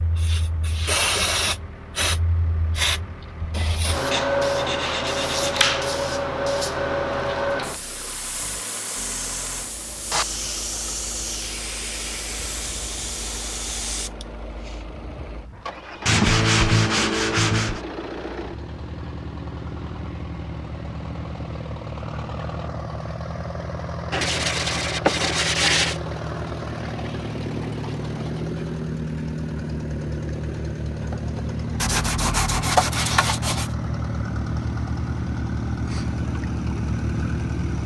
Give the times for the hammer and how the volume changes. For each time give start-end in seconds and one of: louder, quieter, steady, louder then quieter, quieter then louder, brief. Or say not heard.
not heard.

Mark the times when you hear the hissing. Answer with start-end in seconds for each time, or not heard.
0.0-14.8.